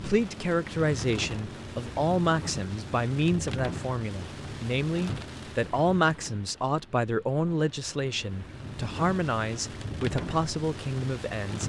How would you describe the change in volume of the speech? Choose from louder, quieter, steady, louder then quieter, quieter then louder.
steady.